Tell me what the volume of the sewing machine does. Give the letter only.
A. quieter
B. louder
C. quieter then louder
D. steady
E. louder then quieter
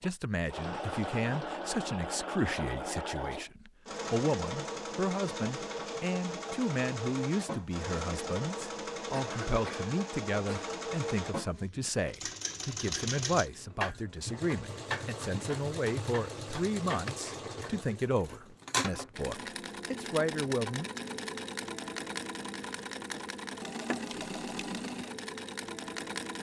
D.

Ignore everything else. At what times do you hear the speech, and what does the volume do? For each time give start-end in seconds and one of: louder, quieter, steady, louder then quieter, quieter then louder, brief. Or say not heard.
0.0-20.9 steady.